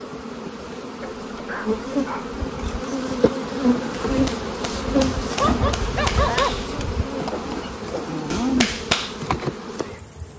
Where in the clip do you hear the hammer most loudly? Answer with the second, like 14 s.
9 s.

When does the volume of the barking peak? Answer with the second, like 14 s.
6 s.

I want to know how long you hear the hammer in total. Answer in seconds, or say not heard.
5 s.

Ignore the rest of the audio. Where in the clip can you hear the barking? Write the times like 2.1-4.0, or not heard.
1.0-2.4, 5.3-6.8.